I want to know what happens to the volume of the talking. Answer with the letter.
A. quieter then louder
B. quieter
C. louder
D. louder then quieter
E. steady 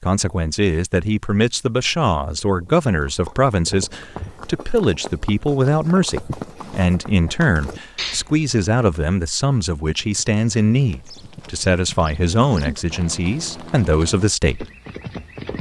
E.